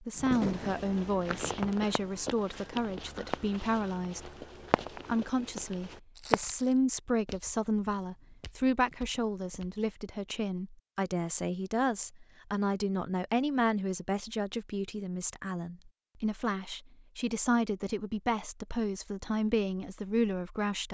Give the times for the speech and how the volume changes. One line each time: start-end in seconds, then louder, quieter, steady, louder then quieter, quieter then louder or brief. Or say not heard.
0.0-20.8 steady.